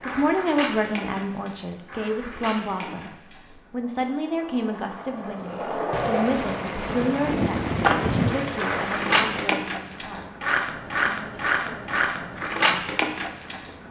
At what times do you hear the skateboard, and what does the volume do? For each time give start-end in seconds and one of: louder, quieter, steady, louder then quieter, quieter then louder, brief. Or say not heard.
0.0-13.8 quieter then louder.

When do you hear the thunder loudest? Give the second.
8 s.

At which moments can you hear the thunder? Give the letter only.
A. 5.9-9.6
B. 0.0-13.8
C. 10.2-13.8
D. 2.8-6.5
A.